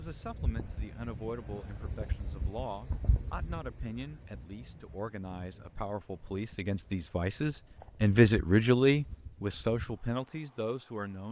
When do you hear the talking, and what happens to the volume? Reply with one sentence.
You can hear the talking from 0.0 to 11.2 s, getting louder.